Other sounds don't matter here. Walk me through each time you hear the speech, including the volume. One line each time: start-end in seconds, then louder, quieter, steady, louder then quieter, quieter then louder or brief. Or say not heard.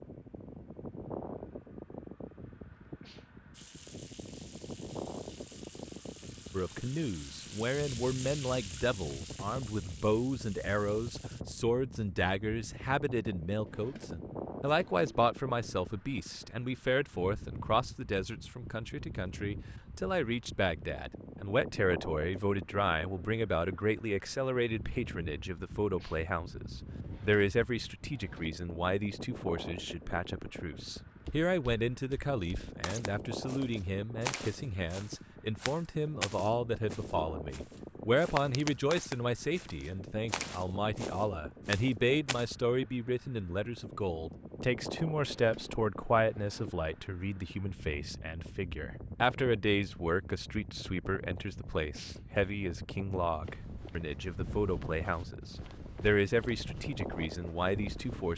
6.5-58.3 steady.